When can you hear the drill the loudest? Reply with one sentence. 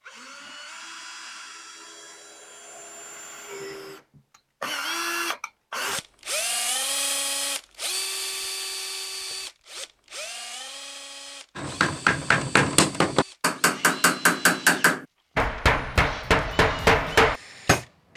The loudest moment of the drill is at 7 seconds.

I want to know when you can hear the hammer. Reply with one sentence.
The hammer can be heard from 11.6 to 17.9 s.